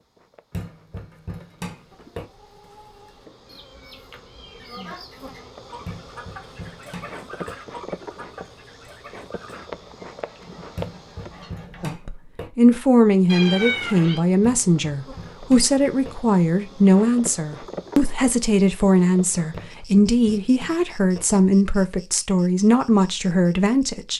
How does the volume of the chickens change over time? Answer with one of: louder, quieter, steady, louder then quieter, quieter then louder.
louder then quieter.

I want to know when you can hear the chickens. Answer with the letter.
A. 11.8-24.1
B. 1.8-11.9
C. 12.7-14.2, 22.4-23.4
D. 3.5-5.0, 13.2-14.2
B.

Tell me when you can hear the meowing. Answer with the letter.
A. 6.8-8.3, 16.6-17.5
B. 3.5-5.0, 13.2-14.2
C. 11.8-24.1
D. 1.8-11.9
B.